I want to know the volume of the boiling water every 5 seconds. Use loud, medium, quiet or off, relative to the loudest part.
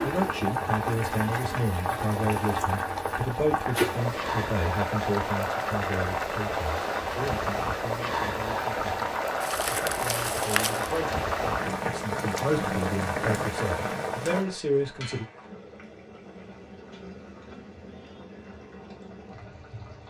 loud, loud, loud, quiet.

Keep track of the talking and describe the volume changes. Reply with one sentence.
The volume of the talking goes down, then up.